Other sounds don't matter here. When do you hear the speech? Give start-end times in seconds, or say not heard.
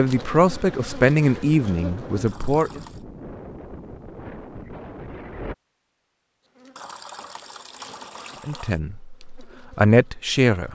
0.0-2.8, 8.4-10.7.